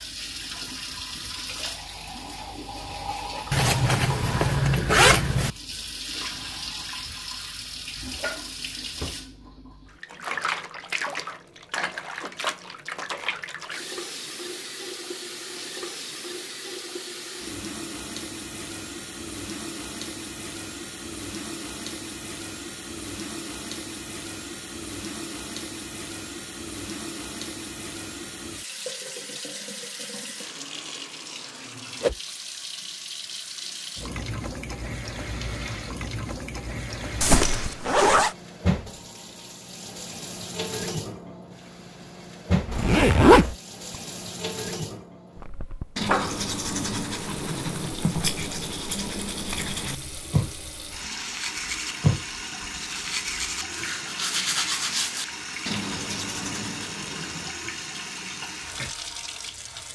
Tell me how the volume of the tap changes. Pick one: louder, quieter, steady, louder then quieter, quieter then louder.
steady.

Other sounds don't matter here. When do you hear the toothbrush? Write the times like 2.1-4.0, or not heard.
46.0-57.5.